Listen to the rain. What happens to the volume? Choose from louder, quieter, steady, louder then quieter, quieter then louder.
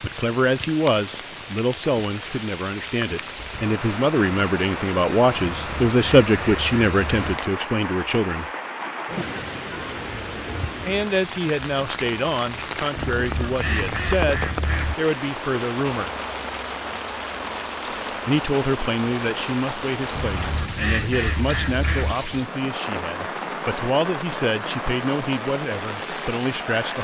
steady.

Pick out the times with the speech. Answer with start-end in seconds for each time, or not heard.
0.0-8.4, 10.8-16.1, 18.2-26.9.